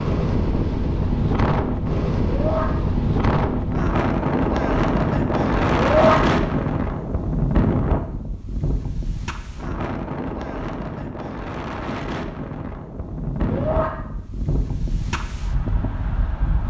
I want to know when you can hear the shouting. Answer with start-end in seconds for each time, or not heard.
2.2-2.7, 5.8-6.2, 13.4-13.9.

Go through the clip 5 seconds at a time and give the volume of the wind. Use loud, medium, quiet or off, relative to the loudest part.
loud, loud, medium, medium.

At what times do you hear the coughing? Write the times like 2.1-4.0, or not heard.
not heard.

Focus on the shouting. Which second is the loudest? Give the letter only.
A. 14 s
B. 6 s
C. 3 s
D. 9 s
B.